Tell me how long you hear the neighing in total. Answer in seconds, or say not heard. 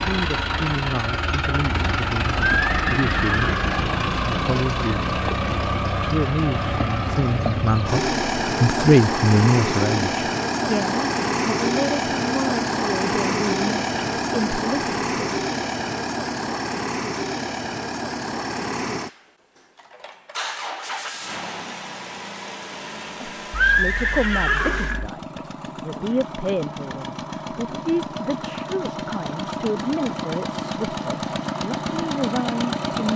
3 s.